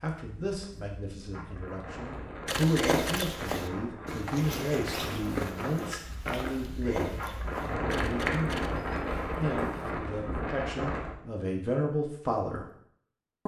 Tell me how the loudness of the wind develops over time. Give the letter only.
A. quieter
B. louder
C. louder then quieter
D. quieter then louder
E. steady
B.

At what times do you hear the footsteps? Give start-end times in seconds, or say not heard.
2.5-9.9.